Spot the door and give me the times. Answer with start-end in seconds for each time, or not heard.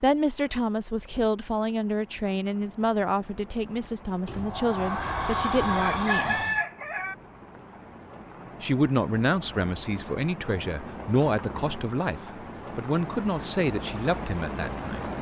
4.2-6.7.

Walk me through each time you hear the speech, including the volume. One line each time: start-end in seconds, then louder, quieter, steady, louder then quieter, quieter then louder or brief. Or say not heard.
0.0-6.4 steady
8.6-15.1 steady.